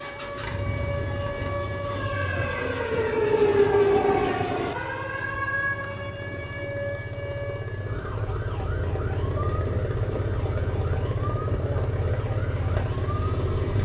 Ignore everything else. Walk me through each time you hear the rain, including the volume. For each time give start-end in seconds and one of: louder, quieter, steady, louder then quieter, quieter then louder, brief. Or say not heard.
not heard.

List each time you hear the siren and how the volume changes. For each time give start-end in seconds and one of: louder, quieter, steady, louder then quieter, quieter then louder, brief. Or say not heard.
0.0-13.4 louder then quieter.